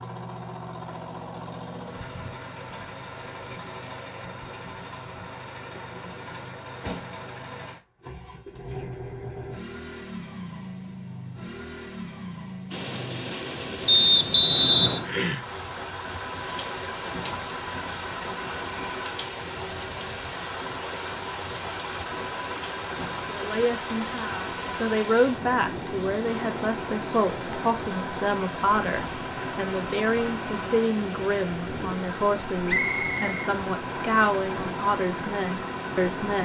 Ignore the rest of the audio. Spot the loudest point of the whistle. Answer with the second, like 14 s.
15 s.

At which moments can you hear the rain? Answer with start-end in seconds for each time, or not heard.
12.7-36.4.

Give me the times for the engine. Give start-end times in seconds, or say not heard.
0.0-36.4.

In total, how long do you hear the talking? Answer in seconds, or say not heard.
13 s.